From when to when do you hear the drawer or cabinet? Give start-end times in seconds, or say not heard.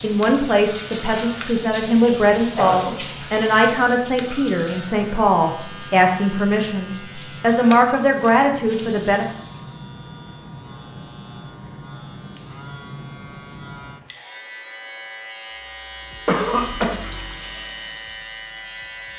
not heard.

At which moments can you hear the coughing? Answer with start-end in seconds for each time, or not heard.
2.0-3.0, 16.2-16.9.